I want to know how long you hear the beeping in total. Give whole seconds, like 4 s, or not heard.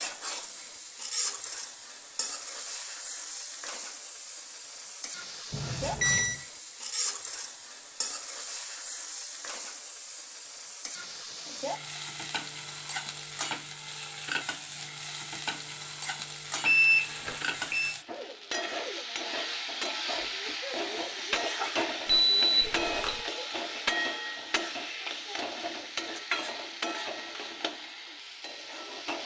3 s.